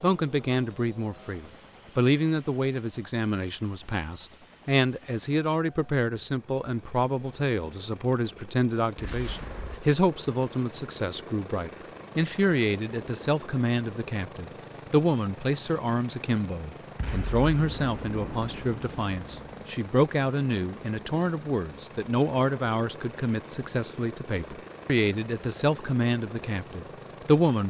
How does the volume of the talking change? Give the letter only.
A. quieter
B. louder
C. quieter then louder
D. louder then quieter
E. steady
E.